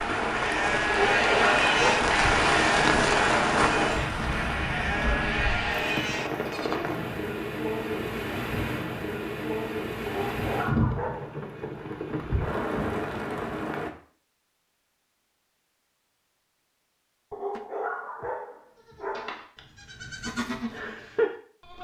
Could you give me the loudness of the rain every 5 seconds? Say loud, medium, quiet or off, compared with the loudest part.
loud, medium, medium, off, off.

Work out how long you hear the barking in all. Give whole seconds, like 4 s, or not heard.
5 s.